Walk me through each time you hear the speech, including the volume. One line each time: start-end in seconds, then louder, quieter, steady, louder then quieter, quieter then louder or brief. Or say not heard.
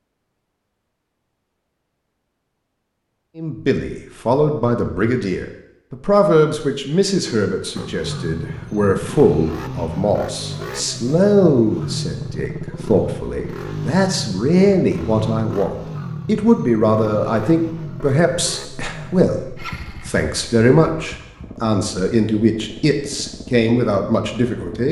3.4-24.8 steady.